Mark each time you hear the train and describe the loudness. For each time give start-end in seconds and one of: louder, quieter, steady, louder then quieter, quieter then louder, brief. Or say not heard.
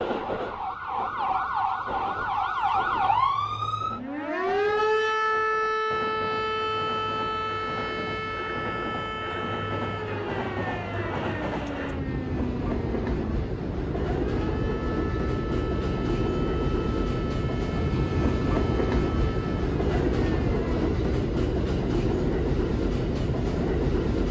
0.0-24.2 louder.